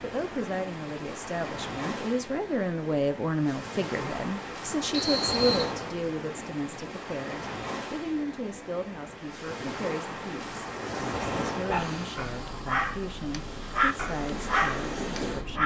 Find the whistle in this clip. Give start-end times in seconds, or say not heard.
4.9-5.7.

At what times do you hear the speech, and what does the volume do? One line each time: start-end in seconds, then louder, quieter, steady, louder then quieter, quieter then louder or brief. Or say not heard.
0.0-15.6 quieter.